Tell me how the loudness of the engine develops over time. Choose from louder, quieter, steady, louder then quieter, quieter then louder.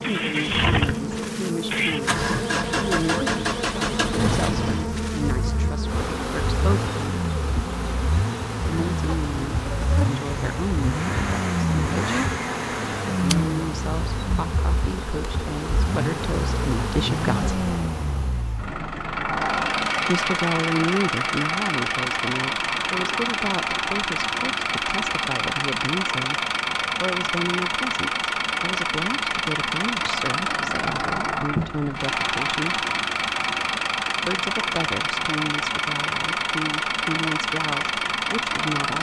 steady.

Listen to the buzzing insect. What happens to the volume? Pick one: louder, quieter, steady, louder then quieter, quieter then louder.
steady.